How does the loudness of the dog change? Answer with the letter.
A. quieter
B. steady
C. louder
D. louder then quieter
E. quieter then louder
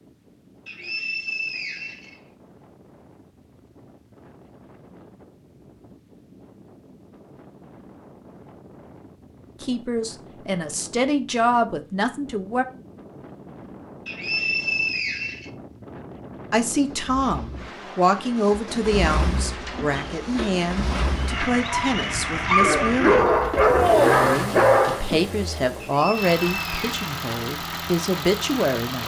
C.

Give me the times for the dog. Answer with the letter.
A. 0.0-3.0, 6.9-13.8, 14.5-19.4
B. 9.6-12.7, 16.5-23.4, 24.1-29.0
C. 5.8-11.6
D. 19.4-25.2
D.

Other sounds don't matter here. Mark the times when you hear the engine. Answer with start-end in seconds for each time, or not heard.
16.8-29.0.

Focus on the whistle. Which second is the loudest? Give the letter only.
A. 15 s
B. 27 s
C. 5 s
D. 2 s
A.